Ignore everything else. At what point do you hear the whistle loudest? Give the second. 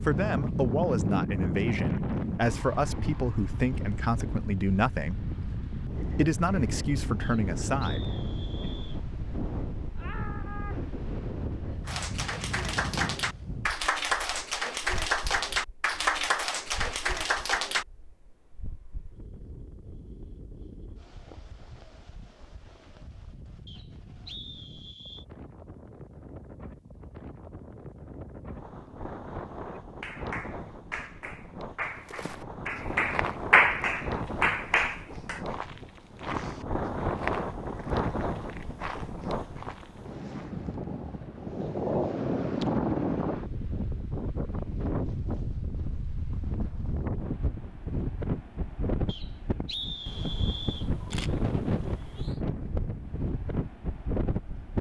50 s.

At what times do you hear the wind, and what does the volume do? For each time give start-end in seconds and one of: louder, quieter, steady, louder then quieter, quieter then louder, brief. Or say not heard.
0.0-54.7 quieter then louder.